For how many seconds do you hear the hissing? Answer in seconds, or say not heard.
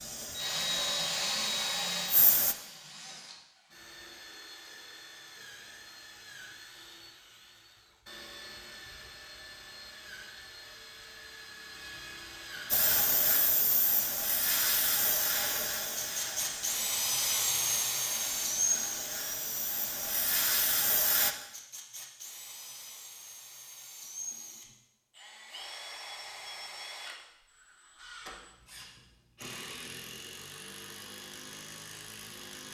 11 s.